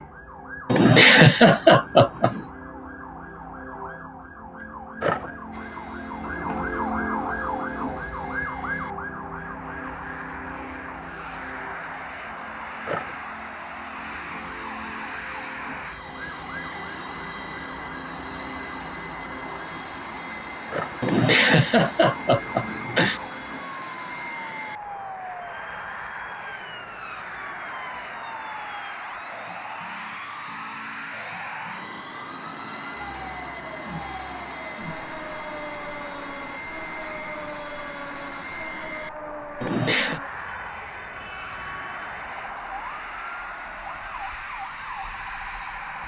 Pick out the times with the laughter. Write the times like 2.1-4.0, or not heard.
0.7-2.4, 21.0-23.2, 39.6-40.2.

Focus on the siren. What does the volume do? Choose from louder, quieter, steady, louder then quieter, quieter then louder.
quieter.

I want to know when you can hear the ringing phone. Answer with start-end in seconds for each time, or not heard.
not heard.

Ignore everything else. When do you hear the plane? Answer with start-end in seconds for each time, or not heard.
5.5-46.0.